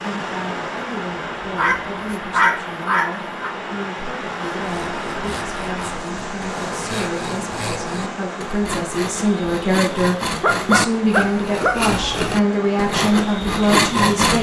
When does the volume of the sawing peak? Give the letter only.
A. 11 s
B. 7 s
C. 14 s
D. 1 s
C.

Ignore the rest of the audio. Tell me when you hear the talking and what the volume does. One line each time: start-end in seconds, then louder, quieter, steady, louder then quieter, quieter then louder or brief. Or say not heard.
0.0-14.3 louder.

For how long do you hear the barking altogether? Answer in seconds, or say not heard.
3 s.